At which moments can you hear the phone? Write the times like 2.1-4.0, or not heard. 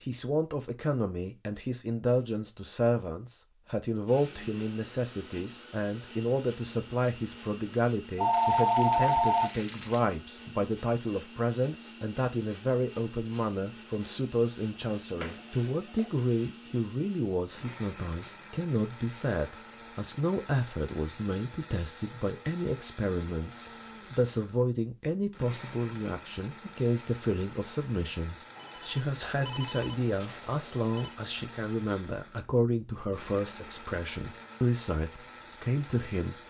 8.2-9.6, 15.2-16.1, 28.6-31.1.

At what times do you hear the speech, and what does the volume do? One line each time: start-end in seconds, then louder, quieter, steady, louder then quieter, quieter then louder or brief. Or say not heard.
0.0-36.4 steady.